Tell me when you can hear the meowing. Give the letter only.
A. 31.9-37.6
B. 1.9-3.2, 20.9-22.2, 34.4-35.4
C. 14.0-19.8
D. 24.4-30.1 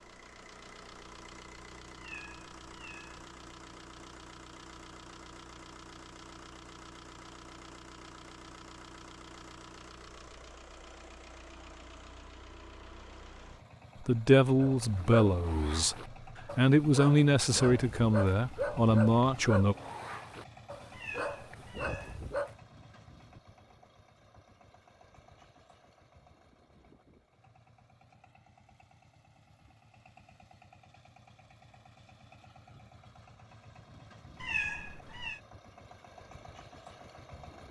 B.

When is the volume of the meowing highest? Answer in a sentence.
The volume of the meowing peaks at 35 seconds.